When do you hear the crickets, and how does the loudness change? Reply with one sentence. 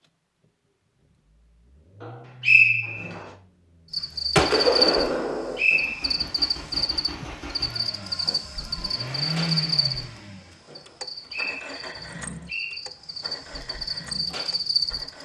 The crickets can be heard from 3.9 to 15.2 s, getting quieter then louder.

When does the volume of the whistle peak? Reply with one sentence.
The loudest moment of the whistle is at 3 seconds.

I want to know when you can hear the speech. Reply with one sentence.
You can't hear the speech here.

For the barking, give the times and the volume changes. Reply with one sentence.
The barking can't be heard in this clip.